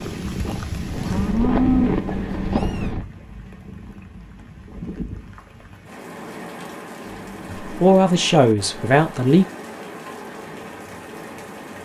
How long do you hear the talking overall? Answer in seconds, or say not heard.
2 s.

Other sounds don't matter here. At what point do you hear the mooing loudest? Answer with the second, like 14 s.
2 s.